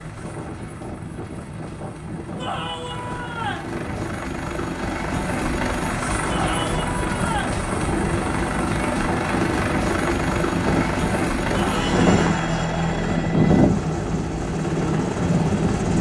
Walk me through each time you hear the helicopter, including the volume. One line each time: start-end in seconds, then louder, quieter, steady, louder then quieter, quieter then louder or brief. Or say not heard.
0.0-15.9 louder.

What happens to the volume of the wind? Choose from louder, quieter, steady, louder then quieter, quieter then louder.
louder.